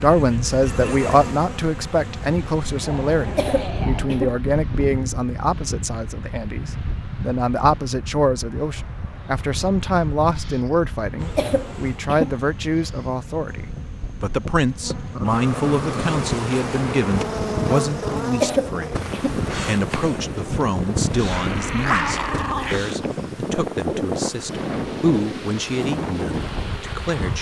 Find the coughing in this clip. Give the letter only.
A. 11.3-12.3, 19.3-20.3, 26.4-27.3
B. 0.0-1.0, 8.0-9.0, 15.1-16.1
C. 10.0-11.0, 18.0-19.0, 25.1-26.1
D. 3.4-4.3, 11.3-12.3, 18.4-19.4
D.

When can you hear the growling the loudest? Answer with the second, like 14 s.
22 s.